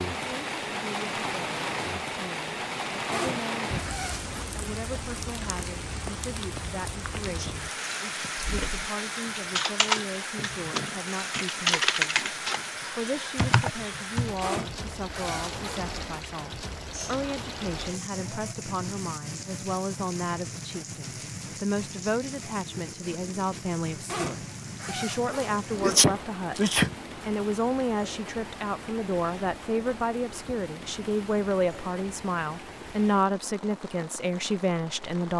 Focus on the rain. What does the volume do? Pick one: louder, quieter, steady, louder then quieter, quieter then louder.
quieter.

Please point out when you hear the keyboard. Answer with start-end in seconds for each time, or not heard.
8.3-14.3.